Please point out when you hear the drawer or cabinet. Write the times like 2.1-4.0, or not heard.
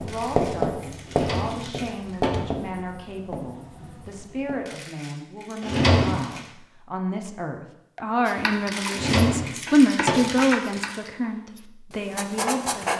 1.1-2.6, 5.6-6.2, 8.9-10.2.